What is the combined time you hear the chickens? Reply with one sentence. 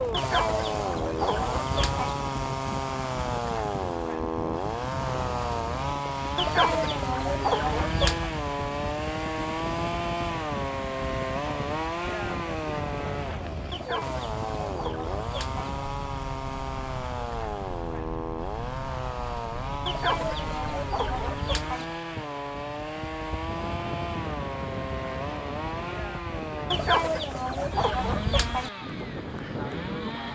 The chickens can be heard for 10 seconds in total.